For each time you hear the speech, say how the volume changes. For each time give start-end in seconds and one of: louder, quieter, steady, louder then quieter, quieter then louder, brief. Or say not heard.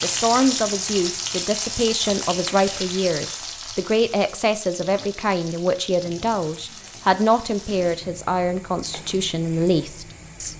0.0-10.5 steady.